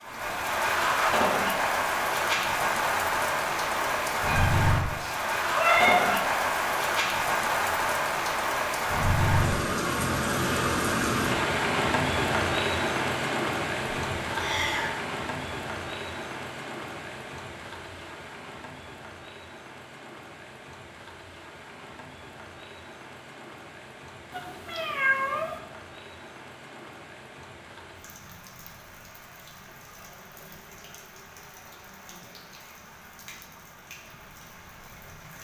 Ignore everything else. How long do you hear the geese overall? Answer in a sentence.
The geese can't be heard in this clip.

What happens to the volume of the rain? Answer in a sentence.
The loudness of the rain goes down.